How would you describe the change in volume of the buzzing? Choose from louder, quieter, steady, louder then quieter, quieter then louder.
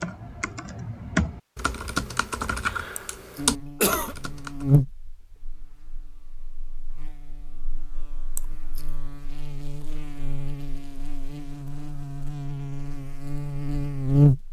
quieter then louder.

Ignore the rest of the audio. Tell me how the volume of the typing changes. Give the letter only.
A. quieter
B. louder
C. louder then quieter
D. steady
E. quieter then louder
C.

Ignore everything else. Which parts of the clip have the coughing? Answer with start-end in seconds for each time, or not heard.
3.0-4.2, 8.3-8.8.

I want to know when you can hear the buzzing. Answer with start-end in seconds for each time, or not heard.
3.4-14.4.